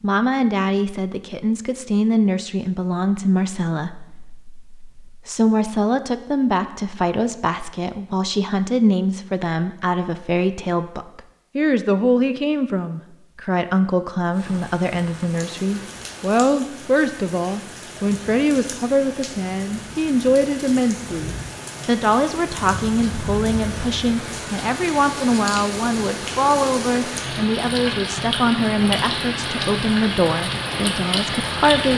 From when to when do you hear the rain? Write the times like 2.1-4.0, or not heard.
14.3-31.9.